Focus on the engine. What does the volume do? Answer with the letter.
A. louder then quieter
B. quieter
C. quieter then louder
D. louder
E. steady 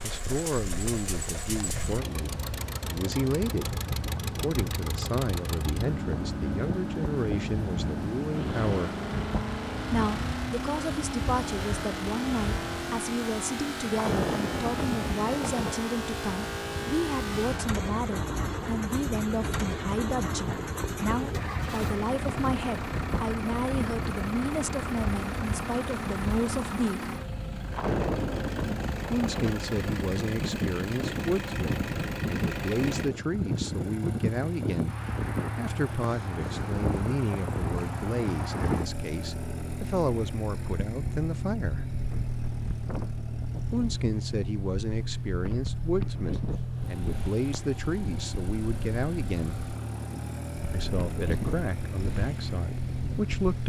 E.